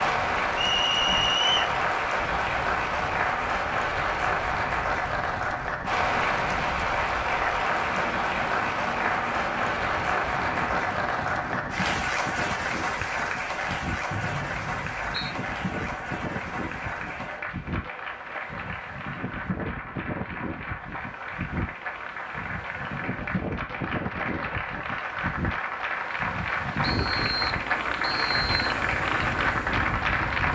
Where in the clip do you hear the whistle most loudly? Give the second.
1 s.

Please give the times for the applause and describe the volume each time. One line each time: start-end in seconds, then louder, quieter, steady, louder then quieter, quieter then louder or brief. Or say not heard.
0.0-30.5 quieter then louder.